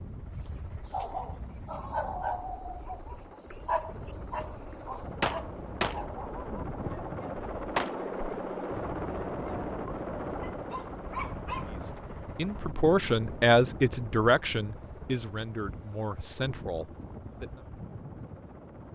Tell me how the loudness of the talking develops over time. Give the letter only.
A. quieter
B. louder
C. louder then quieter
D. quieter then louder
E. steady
A.